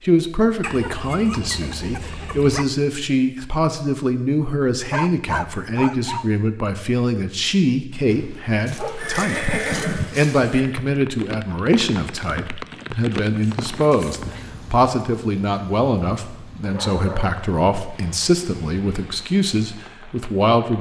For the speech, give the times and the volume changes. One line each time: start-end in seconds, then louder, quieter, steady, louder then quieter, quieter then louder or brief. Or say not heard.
0.0-20.7 steady.